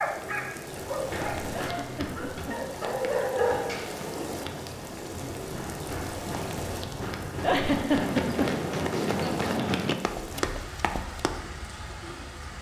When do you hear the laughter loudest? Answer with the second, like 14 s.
8 s.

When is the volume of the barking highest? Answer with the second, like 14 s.
3 s.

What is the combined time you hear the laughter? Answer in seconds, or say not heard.
2 s.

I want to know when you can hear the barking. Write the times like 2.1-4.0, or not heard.
0.0-3.6.